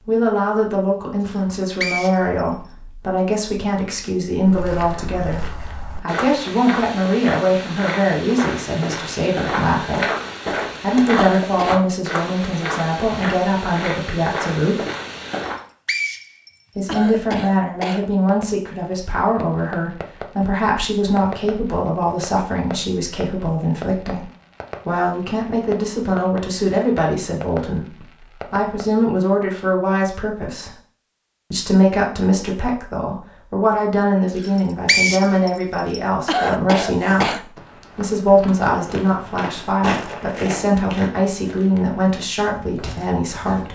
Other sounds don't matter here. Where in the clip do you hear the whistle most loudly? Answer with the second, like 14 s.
35 s.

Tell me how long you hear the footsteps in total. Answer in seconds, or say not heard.
18 s.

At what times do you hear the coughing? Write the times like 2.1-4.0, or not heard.
11.4-11.8, 16.9-18.1, 36.2-37.5.